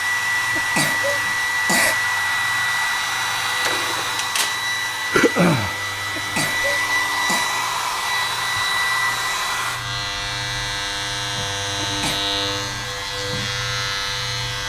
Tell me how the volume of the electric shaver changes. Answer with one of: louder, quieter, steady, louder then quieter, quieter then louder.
louder.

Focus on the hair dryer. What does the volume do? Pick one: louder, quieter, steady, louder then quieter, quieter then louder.
quieter.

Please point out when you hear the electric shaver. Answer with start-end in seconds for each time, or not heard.
0.0-14.6.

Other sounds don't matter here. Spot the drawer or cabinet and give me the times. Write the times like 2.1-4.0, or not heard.
3.6-4.7.